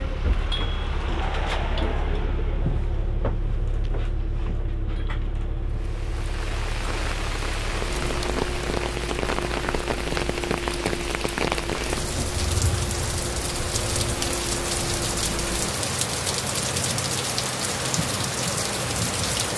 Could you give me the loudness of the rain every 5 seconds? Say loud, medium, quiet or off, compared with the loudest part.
off, loud, loud, loud.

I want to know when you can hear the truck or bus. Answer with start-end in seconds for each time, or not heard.
0.0-19.5.